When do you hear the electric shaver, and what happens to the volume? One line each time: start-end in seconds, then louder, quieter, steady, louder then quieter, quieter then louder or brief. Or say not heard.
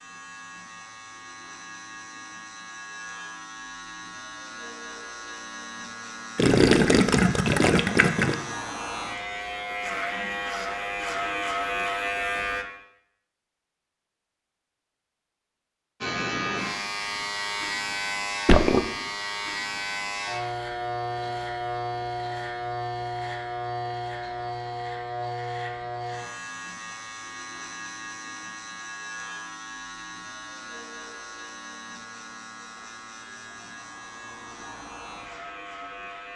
0.0-12.7 louder
16.0-36.3 quieter.